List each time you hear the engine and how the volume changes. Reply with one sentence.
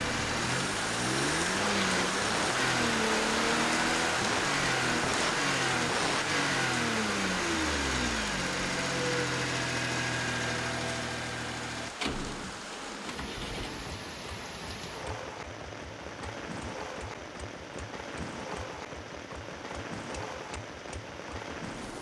The engine can be heard from 0.0 to 21.7 s, getting quieter.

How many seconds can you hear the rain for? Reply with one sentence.
The rain can be heard for 22 seconds in total.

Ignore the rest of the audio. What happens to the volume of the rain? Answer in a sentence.
The loudness of the rain goes down.